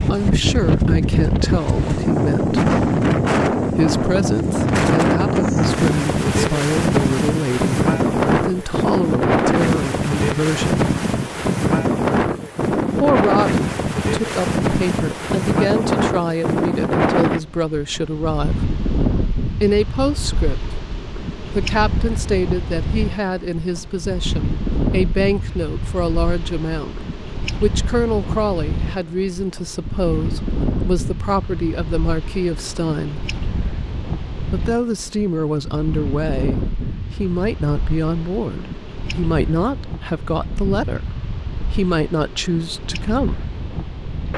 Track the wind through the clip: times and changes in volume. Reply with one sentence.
You can hear the wind from 0.0 to 44.3 s, getting quieter.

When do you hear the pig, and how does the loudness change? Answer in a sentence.
You can't hear the pig here.